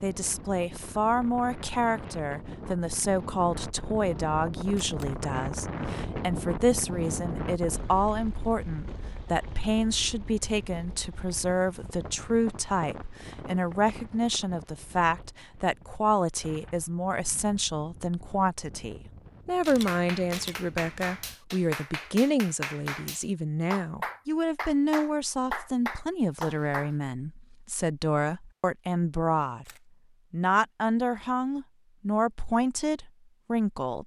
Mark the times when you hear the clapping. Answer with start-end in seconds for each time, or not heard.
19.6-26.9.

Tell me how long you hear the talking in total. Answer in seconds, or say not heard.
33 s.